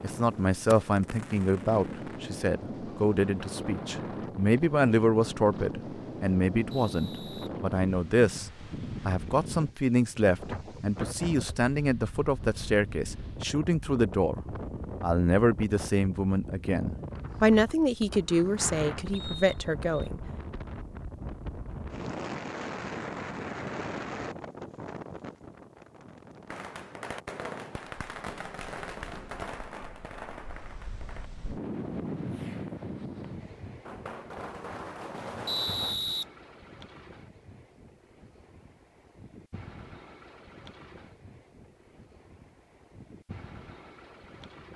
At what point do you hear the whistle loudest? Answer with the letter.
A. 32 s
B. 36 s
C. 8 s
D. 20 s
B.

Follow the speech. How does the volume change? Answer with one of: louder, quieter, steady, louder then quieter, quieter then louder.
steady.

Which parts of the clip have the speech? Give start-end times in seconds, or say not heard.
0.0-14.4, 15.0-20.2.